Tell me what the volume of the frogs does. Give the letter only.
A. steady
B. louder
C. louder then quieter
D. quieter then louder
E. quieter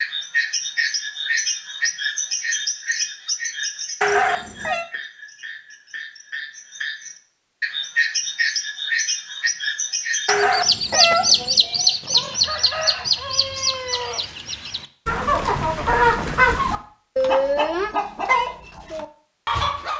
D.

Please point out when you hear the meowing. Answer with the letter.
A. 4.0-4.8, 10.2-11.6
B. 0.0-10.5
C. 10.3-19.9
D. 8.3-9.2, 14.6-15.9
A.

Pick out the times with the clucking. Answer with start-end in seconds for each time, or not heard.
10.3-19.9.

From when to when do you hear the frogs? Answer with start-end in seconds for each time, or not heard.
0.0-10.5.